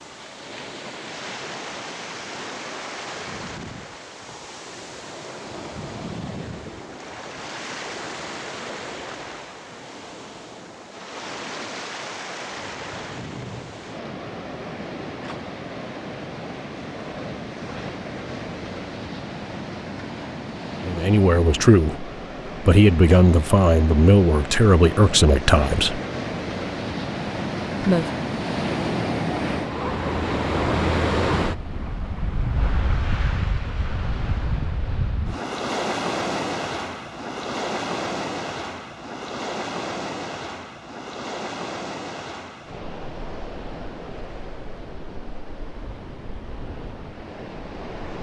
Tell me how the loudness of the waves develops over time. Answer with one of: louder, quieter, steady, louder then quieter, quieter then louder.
louder then quieter.